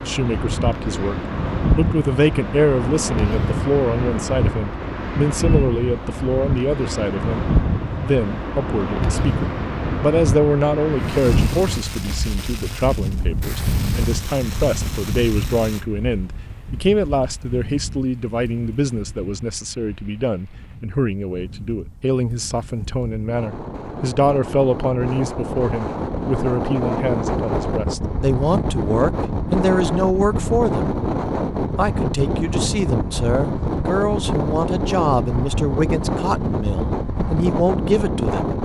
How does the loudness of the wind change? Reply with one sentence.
The volume of the wind goes down, then up.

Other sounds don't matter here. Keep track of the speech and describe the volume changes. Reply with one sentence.
The volume of the speech stays about the same.